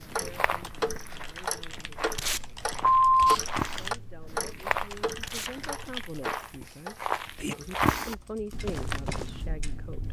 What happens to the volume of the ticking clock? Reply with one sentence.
The loudness of the ticking clock goes down.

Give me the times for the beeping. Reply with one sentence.
You can hear the beeping from 2.9 to 3.8 s.